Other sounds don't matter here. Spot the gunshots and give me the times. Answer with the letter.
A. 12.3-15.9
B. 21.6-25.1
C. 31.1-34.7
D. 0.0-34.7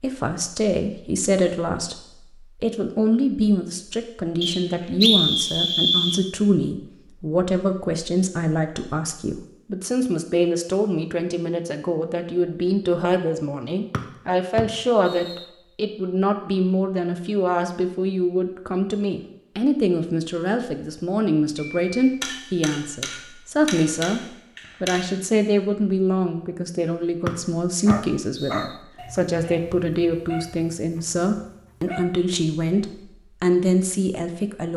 B.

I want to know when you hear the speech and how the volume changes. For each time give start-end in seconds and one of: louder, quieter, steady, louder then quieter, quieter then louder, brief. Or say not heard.
0.0-34.7 steady.